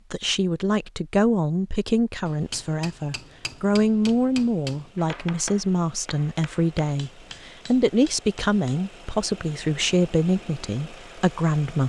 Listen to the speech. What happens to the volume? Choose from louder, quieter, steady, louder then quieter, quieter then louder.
steady.